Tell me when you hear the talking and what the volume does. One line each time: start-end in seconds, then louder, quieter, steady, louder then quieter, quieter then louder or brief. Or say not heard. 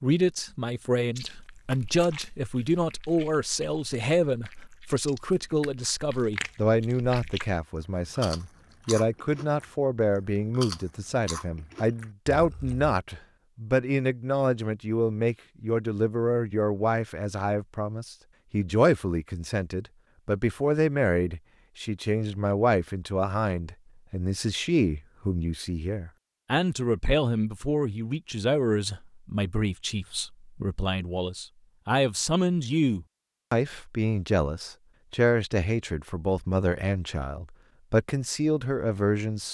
0.0-39.4 steady.